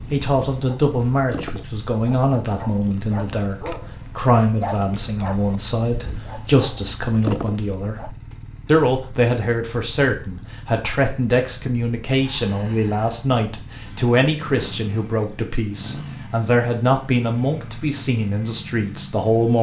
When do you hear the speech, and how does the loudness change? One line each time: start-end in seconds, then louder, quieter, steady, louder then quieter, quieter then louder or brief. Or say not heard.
0.1-19.5 steady.